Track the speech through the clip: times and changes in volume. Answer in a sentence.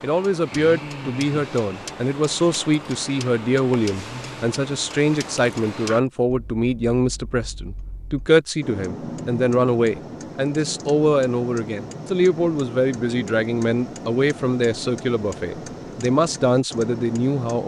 You can hear the speech from 0.0 to 17.6 s, at a steady volume.